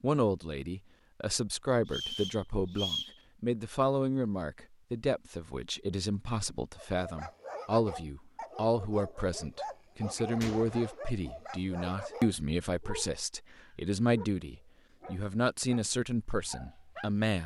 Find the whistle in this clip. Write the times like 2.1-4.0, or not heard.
1.9-3.1.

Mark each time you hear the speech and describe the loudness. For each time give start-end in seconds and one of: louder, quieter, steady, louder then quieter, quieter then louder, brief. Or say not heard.
0.0-17.4 steady.